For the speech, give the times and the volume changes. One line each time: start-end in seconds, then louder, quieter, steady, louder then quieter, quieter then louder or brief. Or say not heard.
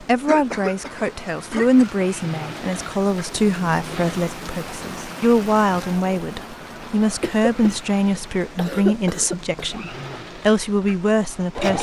0.0-11.7 steady.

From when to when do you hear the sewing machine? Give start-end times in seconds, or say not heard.
2.0-4.2, 9.7-11.7.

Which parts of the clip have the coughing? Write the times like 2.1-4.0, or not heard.
0.2-2.2, 7.2-9.8.